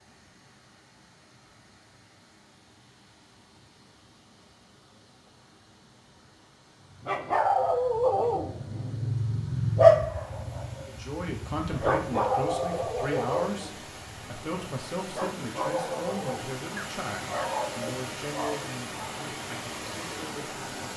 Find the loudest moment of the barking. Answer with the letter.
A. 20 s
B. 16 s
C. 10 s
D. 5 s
C.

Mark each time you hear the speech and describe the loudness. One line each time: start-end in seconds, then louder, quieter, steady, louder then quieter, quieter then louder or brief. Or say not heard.
10.8-20.9 quieter.